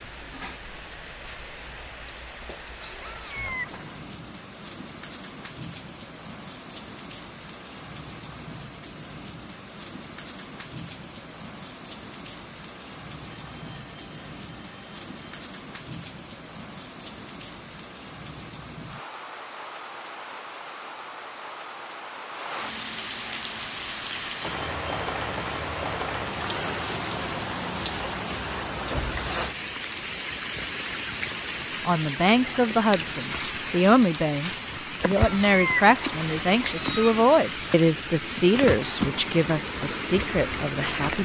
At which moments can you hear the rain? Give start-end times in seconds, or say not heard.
0.0-41.2.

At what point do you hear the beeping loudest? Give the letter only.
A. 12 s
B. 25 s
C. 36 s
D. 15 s
B.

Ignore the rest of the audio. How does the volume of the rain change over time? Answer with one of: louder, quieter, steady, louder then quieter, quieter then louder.
louder.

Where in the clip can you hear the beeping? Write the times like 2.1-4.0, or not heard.
13.3-15.4, 24.4-25.6.